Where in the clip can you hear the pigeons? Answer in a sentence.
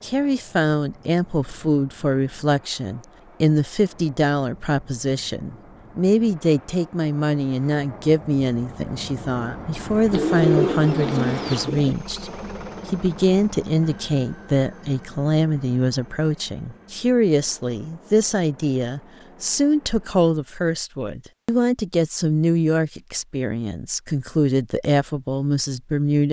You can hear the pigeons from 10.1 to 11.9 s.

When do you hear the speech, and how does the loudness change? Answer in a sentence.
The speech can be heard from 0.0 to 26.2 s, at a steady volume.